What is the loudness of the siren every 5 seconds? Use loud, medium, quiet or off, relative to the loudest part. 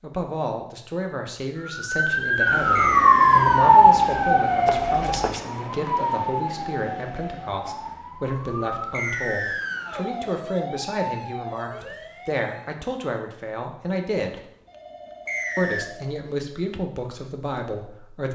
loud, quiet, quiet, off.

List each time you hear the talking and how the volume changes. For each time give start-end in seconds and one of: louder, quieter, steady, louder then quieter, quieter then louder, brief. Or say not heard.
0.0-14.4 steady
15.6-18.3 brief.